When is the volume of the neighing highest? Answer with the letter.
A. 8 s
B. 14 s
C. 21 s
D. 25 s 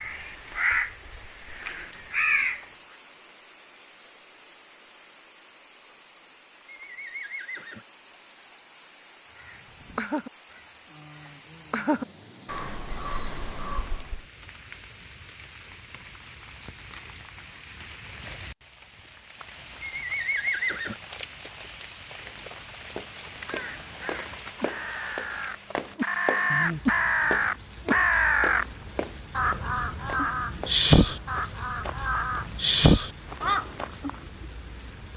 C.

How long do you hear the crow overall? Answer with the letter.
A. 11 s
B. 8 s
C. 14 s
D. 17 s
D.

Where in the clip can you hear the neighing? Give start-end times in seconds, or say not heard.
6.7-7.8, 19.8-21.0.